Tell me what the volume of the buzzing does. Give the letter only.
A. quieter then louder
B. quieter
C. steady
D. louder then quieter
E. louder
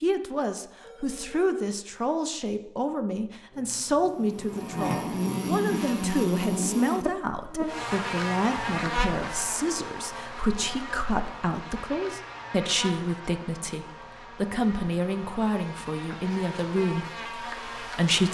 B.